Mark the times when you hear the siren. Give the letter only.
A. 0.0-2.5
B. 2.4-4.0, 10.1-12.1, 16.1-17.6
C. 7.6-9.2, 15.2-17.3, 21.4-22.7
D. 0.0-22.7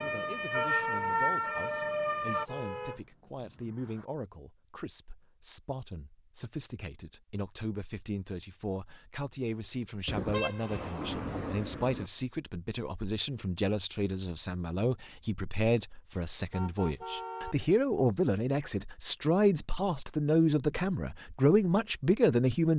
A.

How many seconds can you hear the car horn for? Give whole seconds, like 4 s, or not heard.
5 s.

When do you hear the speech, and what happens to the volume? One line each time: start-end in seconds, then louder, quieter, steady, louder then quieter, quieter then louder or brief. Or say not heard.
0.0-22.7 louder.